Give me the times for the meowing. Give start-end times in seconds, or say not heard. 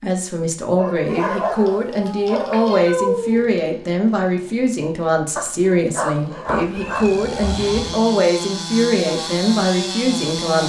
1.1-3.5, 6.5-8.0.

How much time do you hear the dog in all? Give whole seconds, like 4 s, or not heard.
4 s.